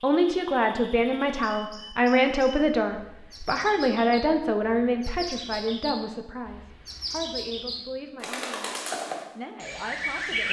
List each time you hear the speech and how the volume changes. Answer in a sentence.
The speech can be heard from 0.0 to 10.4 s, getting quieter.